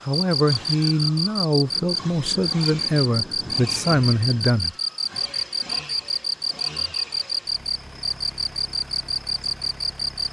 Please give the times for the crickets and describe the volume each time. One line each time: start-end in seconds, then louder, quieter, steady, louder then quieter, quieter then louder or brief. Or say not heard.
0.0-10.2 steady.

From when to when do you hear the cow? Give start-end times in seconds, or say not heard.
not heard.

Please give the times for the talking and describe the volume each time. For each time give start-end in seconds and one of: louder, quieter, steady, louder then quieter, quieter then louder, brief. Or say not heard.
0.1-4.8 steady.